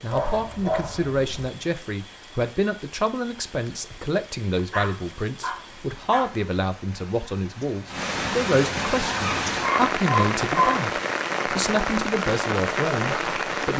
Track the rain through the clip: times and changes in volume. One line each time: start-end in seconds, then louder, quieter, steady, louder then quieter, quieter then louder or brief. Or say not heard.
0.0-13.7 louder.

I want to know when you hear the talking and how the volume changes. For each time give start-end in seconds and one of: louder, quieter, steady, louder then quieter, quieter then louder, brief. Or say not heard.
0.0-13.7 steady.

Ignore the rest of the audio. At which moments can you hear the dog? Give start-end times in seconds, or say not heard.
0.1-1.5, 4.7-6.3, 9.2-10.9.